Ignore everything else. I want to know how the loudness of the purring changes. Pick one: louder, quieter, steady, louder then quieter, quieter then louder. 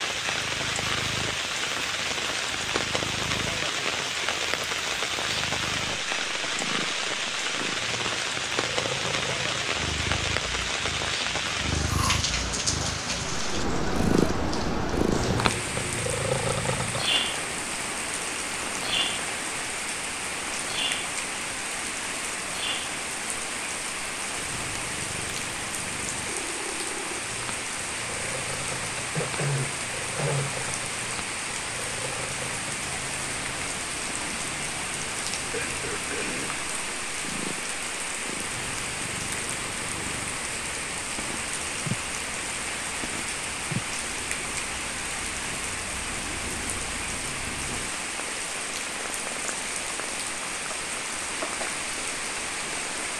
louder then quieter.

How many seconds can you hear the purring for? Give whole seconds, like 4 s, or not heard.
53 s.